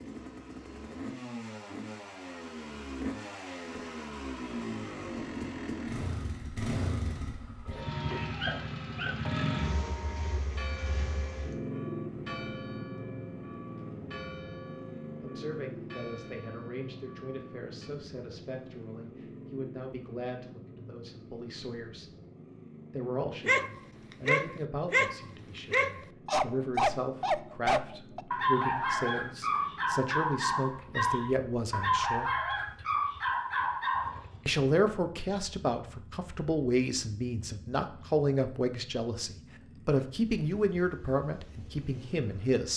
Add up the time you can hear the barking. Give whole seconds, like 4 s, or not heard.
11 s.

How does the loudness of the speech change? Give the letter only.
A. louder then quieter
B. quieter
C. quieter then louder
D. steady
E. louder
E.